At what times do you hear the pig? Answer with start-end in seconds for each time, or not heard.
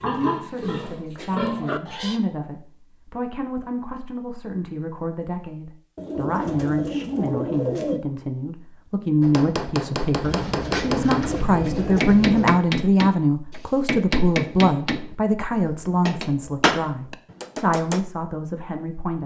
0.0-2.2.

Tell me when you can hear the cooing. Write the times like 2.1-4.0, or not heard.
6.0-8.0, 10.2-12.6.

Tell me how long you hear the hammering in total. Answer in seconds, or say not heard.
9 s.